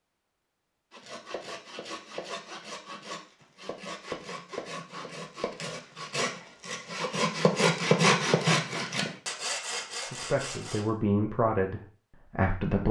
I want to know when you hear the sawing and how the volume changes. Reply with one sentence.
The sawing can be heard from 0.9 to 10.9 s, getting louder then quieter.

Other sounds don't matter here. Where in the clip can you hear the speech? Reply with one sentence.
The speech can be heard from 10.1 to 12.8 s.